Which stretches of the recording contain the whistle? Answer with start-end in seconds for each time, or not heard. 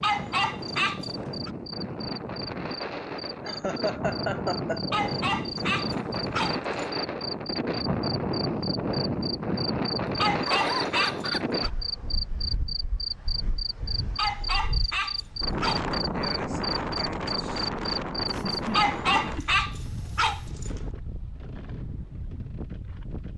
not heard.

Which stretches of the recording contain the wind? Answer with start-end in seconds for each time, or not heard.
0.0-23.3.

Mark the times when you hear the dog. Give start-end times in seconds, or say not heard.
0.0-1.5, 4.9-6.9, 10.2-11.7, 14.2-15.8, 18.8-20.8.